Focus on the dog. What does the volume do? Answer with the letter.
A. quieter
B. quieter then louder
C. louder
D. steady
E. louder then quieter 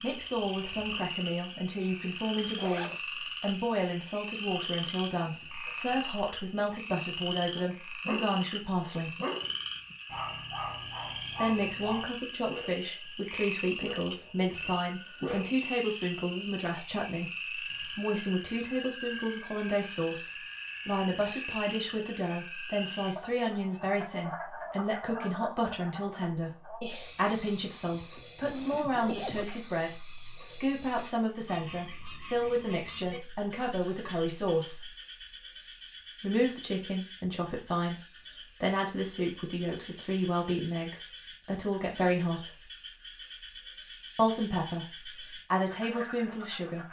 A.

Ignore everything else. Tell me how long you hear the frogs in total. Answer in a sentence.
The frogs can be heard for 47 seconds in total.